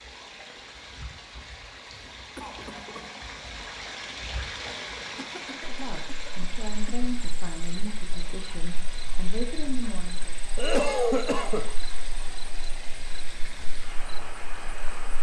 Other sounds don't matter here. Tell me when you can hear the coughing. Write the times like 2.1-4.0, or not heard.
2.4-3.2, 5.2-7.1, 10.6-11.7.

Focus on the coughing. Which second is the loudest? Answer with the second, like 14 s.
11 s.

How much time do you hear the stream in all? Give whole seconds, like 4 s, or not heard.
15 s.